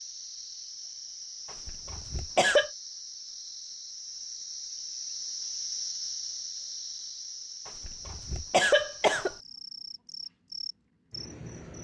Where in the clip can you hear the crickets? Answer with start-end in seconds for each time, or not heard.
0.0-11.7.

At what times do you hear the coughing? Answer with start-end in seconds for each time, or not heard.
1.6-2.7, 7.7-9.3.